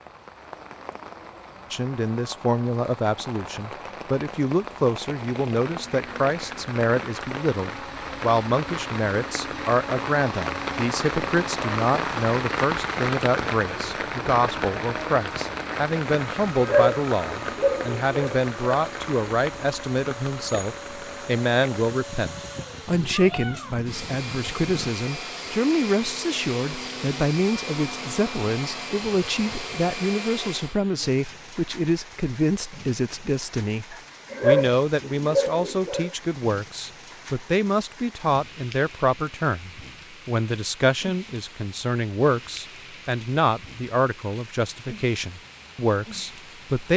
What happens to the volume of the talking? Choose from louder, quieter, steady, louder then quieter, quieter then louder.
steady.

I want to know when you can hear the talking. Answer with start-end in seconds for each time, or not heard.
1.7-46.9.